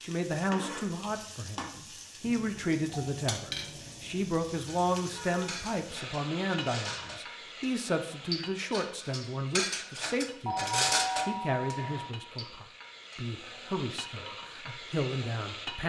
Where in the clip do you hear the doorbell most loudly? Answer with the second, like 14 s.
11 s.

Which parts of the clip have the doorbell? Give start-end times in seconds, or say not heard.
2.2-4.2, 10.4-12.2.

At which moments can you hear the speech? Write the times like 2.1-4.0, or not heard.
0.0-15.8.